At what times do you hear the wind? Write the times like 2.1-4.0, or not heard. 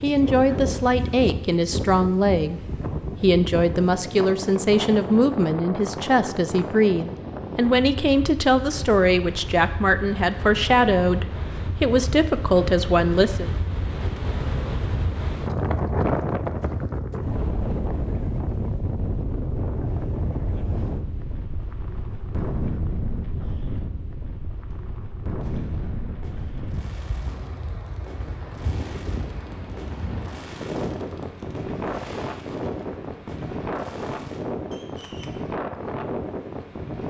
0.0-37.0.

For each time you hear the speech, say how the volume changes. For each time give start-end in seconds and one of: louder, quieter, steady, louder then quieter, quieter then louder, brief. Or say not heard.
0.0-13.5 steady.